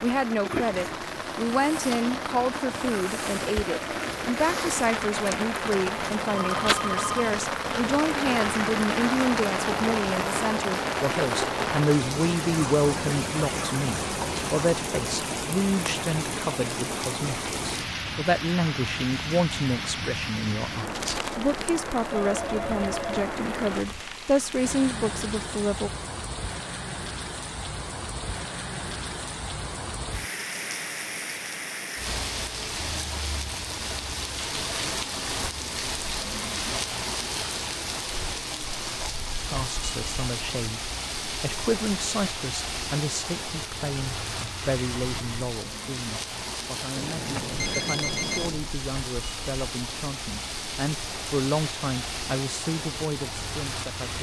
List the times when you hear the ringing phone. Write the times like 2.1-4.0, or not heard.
6.2-7.4, 22.1-24.1, 47.0-48.7.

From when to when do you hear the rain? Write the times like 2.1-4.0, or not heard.
0.0-54.1.